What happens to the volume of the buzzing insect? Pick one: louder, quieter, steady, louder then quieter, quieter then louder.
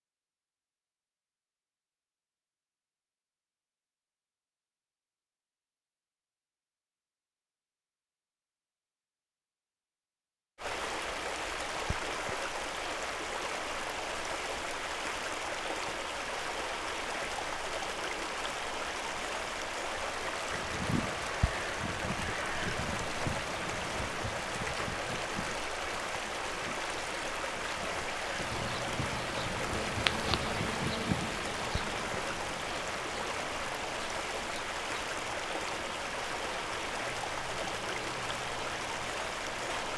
quieter.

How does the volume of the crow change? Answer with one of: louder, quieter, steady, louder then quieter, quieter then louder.
quieter then louder.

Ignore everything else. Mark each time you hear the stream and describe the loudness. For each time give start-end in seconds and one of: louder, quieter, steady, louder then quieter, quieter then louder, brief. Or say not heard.
10.6-39.9 steady.